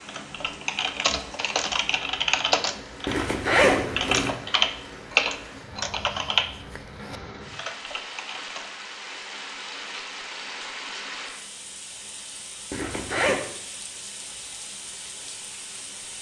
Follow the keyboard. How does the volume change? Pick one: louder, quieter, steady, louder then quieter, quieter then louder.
louder then quieter.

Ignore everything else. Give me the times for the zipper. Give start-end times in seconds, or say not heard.
3.0-4.3, 12.7-13.4.